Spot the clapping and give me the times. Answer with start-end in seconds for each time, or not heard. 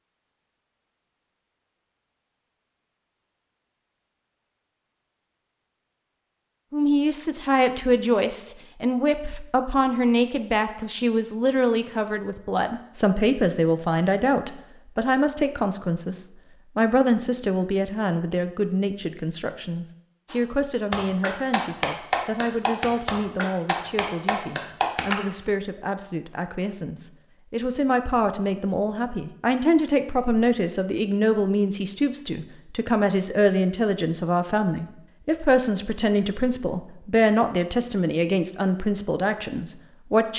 20.3-25.1.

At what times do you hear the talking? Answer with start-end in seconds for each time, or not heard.
6.7-40.3.